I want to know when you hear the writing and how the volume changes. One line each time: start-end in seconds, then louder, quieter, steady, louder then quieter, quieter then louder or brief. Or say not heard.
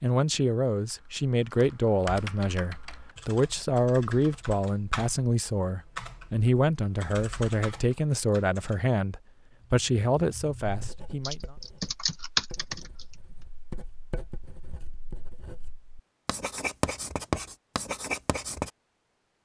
10.6-18.7 louder.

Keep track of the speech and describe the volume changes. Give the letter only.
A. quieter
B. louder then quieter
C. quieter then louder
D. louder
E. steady
E.